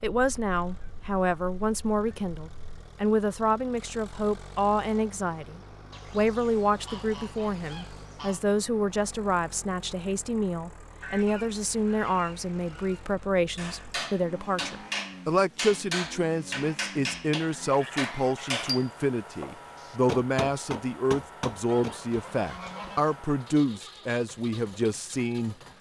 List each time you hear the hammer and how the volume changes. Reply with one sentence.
You can hear the hammer from 13.6 to 22.1 s, at a steady volume.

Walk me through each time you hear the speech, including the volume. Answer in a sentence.
You can hear the speech from 0.0 to 25.6 s, at a steady volume.